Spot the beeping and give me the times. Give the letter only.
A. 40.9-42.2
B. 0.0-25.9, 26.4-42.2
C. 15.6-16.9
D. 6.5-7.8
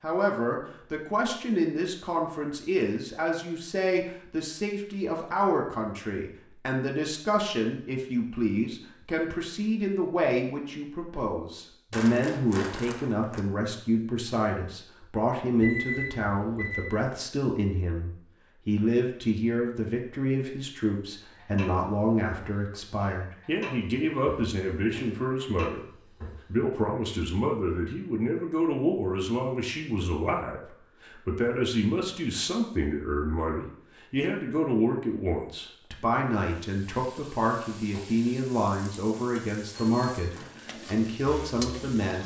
C.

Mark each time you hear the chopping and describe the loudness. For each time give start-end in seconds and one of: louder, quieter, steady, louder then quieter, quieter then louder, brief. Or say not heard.
not heard.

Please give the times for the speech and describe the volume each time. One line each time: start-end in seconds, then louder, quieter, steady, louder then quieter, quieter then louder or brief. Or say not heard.
0.0-25.9 steady
26.4-42.2 steady.